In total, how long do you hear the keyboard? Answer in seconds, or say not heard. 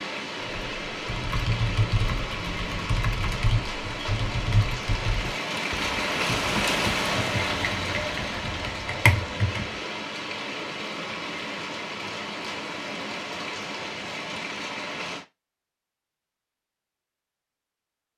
9 s.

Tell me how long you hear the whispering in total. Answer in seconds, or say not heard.
not heard.